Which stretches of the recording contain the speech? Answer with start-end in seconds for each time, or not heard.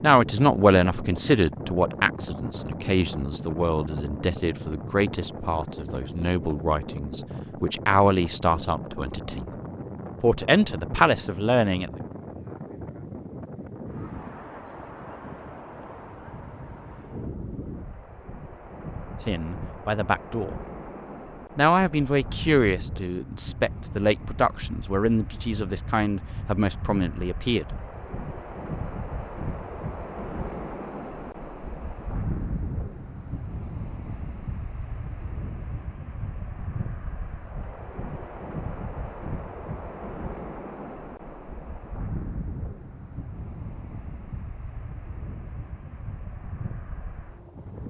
0.0-9.5, 10.2-11.9, 19.2-20.6, 21.6-27.6.